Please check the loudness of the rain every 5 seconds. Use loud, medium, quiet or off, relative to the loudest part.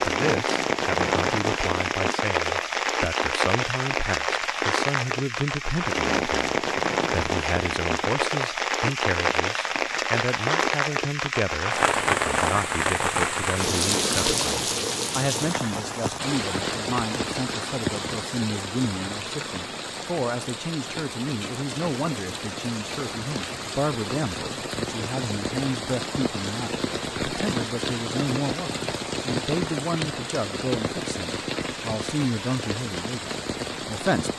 loud, loud, loud, medium, medium, medium, medium.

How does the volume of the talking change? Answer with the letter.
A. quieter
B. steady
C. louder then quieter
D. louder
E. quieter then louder
B.